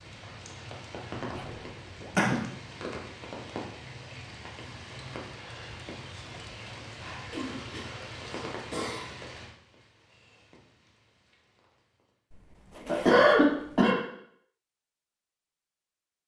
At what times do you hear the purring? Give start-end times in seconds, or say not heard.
not heard.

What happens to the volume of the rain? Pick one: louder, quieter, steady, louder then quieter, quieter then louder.
quieter.